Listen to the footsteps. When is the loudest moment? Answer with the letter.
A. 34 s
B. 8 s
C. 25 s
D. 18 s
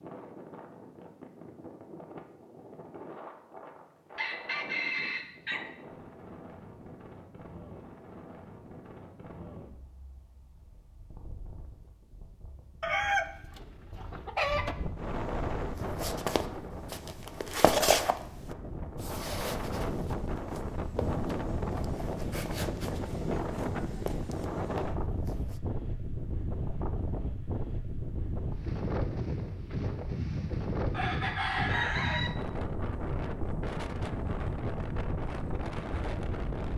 D.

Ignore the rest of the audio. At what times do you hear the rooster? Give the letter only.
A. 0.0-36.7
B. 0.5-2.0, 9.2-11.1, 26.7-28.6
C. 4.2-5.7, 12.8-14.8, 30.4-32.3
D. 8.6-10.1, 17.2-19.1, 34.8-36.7
C.